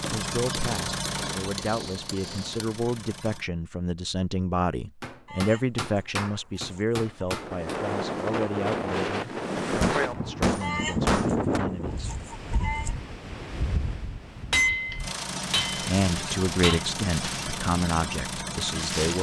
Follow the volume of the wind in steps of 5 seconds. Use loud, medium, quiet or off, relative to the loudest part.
off, loud, loud, medium.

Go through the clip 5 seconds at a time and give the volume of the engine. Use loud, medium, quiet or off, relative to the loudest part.
loud, off, off, loud.